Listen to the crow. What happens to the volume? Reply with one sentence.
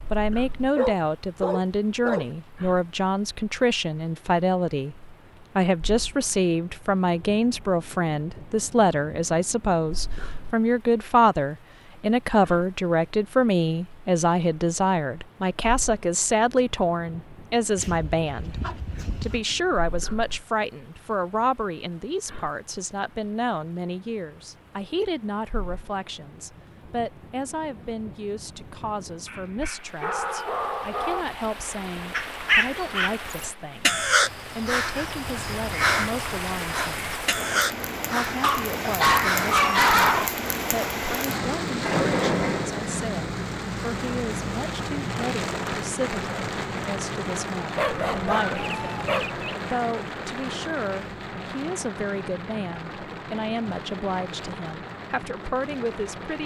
The volume of the crow goes down.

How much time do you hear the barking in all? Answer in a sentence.
You can hear the barking for 9 seconds altogether.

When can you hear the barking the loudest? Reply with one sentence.
The volume of the barking peaks at 40 seconds.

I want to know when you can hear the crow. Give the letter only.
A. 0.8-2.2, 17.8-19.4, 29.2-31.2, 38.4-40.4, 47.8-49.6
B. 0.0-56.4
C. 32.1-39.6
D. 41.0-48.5
C.